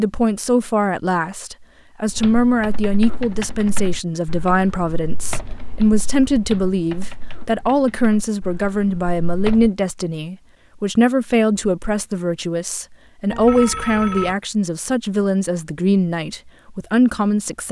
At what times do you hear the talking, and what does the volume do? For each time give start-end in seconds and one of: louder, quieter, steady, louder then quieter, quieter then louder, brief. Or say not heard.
0.0-17.6 steady.